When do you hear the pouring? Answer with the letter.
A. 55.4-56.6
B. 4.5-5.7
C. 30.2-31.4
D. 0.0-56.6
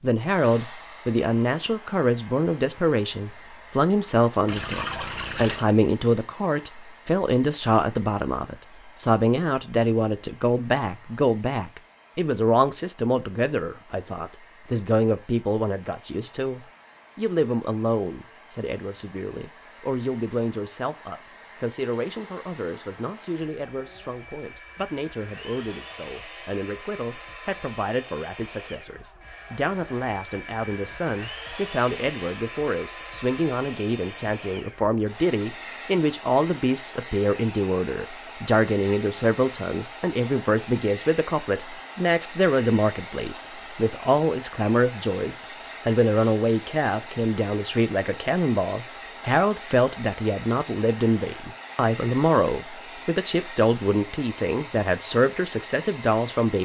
B.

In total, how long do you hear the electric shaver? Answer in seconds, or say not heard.
not heard.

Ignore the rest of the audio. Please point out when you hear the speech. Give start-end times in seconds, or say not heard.
0.0-56.6.